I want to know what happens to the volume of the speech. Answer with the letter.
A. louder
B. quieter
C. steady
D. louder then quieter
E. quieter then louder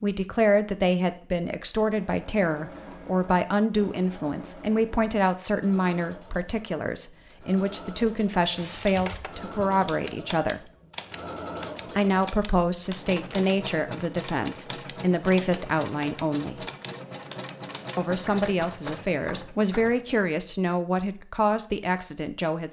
C.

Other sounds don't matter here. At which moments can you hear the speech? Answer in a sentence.
The speech can be heard from 0.0 to 10.7 s, from 11.9 to 16.6 s and from 17.9 to 22.6 s.